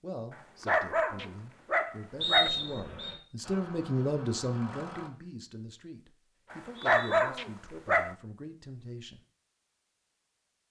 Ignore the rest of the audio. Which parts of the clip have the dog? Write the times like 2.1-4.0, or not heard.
0.3-2.5, 6.5-8.2.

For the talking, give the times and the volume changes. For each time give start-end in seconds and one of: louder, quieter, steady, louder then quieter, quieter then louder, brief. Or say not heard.
0.0-9.2 louder then quieter.